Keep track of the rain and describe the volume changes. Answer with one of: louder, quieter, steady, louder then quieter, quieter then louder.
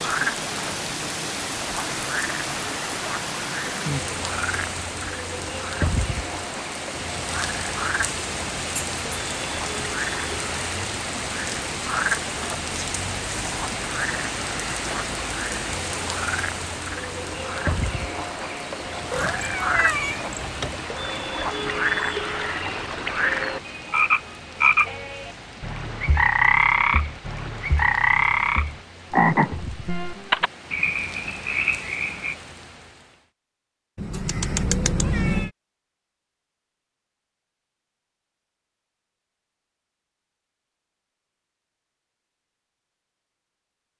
quieter.